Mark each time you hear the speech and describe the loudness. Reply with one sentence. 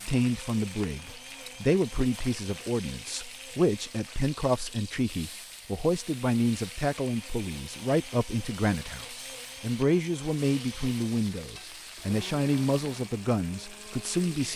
The speech can be heard from 0.1 to 14.5 s, at a steady volume.